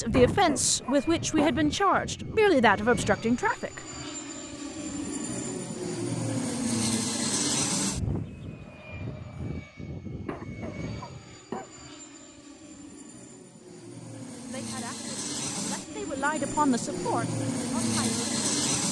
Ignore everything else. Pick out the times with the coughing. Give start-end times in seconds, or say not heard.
0.1-1.6, 10.2-11.7.